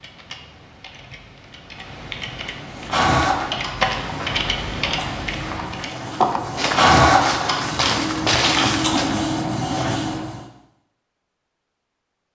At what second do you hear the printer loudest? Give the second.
7 s.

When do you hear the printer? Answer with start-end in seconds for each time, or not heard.
2.7-10.3.